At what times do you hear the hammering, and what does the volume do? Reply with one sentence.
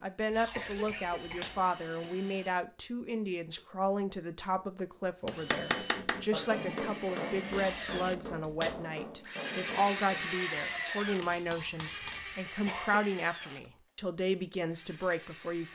The hammering can be heard from 5.2 to 12.2 s, getting quieter.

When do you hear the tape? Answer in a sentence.
You can hear the tape from 0.3 to 1.6 s, from 7.5 to 8.8 s and from 11.2 to 12.3 s.